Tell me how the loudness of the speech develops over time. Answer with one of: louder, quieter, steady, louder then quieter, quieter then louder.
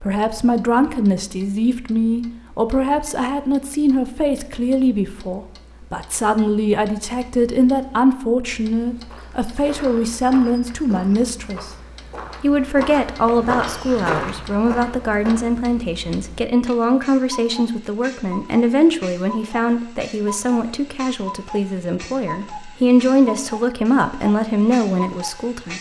steady.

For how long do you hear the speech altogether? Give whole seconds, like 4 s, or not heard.
25 s.